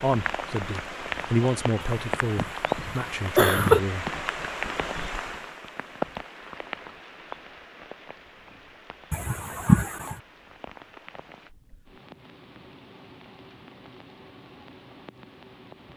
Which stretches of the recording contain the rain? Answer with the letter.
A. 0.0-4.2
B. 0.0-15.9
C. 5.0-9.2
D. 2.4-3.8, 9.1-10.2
B.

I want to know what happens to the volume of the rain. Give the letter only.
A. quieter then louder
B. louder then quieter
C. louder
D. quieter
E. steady
D.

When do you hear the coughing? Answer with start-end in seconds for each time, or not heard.
2.4-3.8, 9.1-10.2.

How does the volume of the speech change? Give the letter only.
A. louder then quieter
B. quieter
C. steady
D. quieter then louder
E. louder
A.